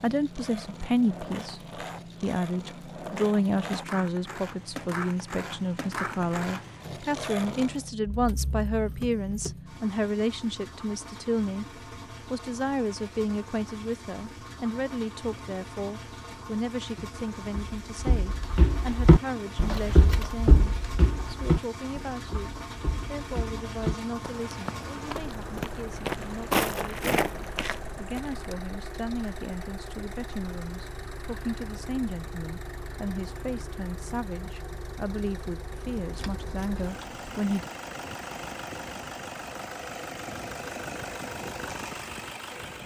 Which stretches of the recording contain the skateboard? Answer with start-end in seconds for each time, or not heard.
0.0-7.8.